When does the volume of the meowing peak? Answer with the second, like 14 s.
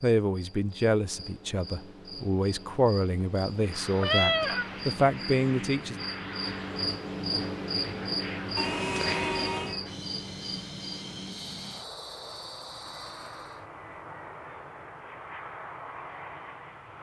4 s.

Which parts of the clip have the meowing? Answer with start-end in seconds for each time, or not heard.
4.0-4.7, 8.6-9.8.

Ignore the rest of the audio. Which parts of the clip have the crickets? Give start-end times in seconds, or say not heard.
0.0-13.6.